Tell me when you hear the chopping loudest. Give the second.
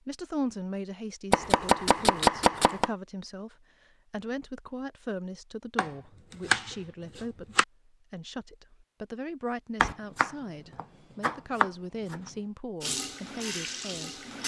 2 s.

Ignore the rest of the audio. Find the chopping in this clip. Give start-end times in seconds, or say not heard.
1.3-2.9, 5.8-7.7, 9.8-12.2.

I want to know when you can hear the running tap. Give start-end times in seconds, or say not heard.
12.8-14.4.